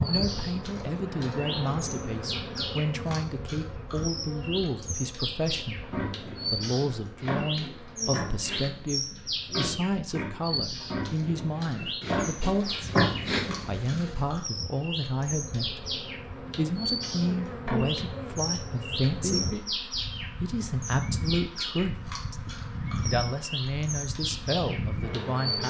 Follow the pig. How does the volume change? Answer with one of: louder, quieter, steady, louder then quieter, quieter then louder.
louder.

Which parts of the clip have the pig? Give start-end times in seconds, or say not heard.
5.6-14.2.